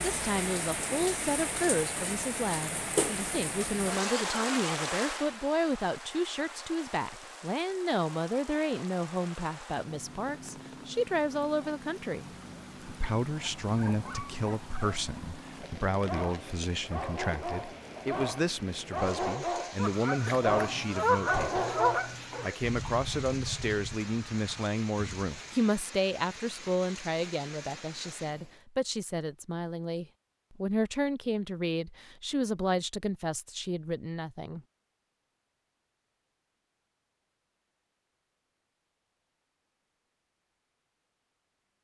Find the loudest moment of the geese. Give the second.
21 s.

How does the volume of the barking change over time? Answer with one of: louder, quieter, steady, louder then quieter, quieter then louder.
louder.